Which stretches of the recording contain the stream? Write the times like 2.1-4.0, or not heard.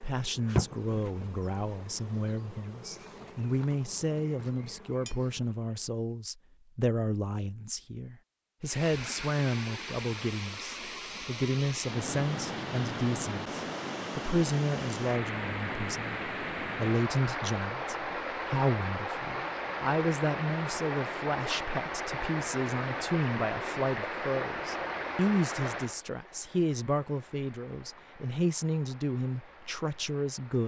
8.6-30.6.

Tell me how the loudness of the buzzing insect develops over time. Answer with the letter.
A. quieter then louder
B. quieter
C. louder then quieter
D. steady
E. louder
B.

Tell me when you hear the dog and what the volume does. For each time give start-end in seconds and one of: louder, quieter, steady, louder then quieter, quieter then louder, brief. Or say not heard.
not heard.